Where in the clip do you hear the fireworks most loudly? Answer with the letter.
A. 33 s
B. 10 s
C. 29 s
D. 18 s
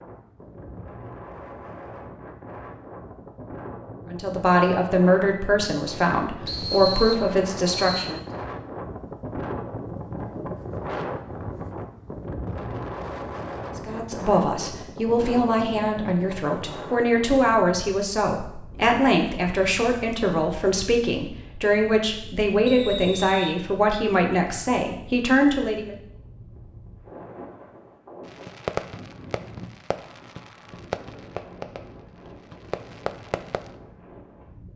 C.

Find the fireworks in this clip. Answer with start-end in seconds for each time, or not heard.
28.2-33.8.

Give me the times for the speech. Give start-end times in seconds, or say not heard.
4.1-8.2, 13.8-25.9.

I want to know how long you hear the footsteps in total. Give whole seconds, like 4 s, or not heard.
not heard.